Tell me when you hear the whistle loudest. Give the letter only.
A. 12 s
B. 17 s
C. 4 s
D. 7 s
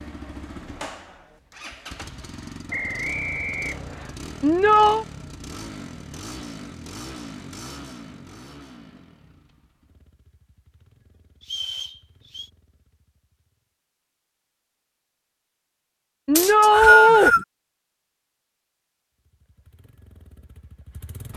B.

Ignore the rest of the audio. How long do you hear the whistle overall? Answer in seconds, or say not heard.
4 s.